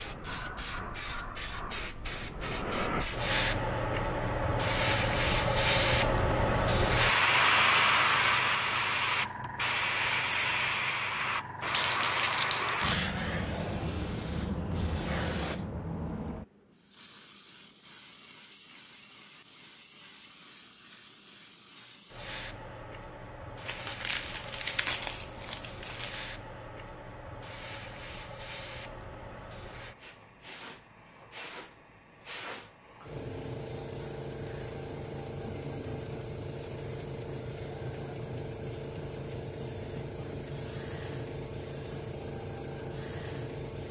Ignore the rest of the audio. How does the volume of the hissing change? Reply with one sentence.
The volume of the hissing goes down, then up.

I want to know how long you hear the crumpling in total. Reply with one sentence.
You can hear the crumpling for 4 seconds altogether.